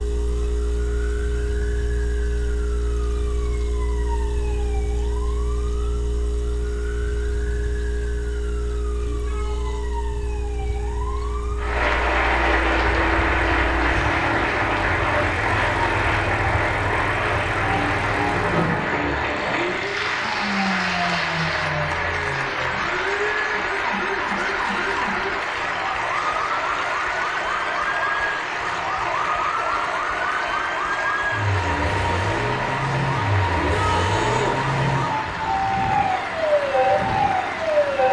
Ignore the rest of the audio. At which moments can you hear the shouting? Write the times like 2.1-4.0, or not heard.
9.1-9.8, 33.5-34.5.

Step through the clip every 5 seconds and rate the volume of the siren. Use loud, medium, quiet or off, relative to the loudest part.
quiet, quiet, quiet, medium, medium, medium, loud, loud.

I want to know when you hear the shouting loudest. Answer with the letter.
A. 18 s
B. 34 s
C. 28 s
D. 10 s
B.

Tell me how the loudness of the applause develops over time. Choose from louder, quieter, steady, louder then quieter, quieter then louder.
quieter.